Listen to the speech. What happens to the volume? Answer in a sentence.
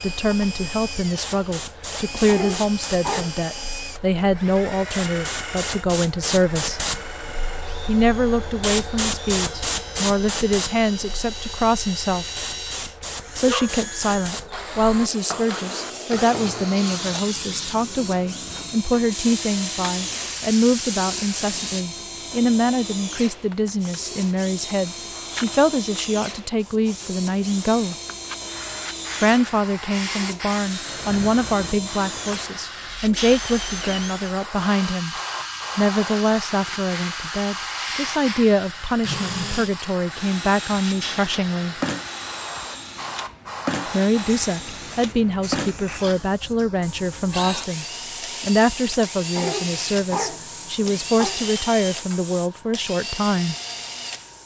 The volume of the speech stays about the same.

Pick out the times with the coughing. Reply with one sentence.
You can hear the coughing from 2.2 to 3.3 s and from 49.4 to 51.4 s.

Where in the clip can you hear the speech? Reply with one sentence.
You can hear the speech from 0.0 to 6.8 s, from 7.8 to 12.4 s, from 13.3 to 27.9 s, from 29.2 to 35.1 s, from 35.8 to 41.8 s and from 43.9 to 53.5 s.